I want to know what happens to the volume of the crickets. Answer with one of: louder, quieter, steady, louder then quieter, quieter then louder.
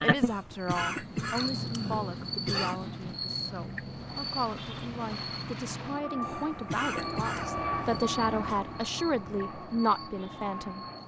quieter.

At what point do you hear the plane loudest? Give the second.
8 s.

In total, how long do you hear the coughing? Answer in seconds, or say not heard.
5 s.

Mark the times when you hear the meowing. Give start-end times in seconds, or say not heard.
not heard.